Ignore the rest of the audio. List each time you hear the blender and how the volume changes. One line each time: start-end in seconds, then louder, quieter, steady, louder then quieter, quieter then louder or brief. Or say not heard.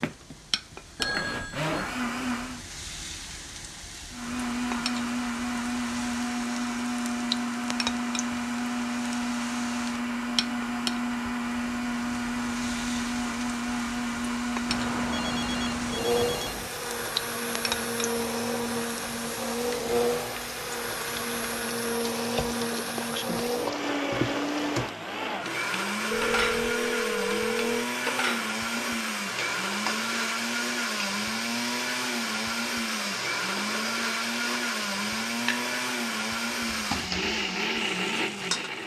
0.0-2.6 brief
4.1-38.8 steady.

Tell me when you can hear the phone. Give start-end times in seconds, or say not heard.
0.9-1.7, 14.7-16.7, 26.1-27.9.